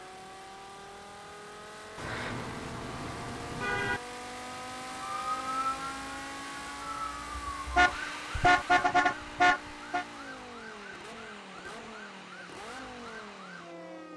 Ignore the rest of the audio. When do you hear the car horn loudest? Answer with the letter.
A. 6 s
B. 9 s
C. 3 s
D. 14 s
B.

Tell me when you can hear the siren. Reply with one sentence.
The siren can be heard from 4.9 to 14.1 s.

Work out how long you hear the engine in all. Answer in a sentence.
The engine can be heard for 14 seconds in total.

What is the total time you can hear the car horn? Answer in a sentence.
You can hear the car horn for 4 seconds altogether.